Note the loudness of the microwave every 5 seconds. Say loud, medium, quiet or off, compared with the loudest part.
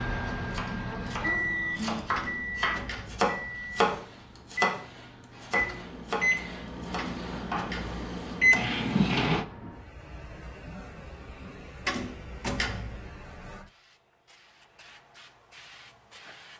medium, loud, off, off.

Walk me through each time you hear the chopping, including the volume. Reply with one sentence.
You can hear the chopping from 0.3 to 4.8 s, getting louder; and briefly from 5.4 to 7.8 s.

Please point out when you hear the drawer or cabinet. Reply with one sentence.
The drawer or cabinet can be heard from 2.1 to 3.3 s, from 7.0 to 8.0 s and from 11.8 to 13.1 s.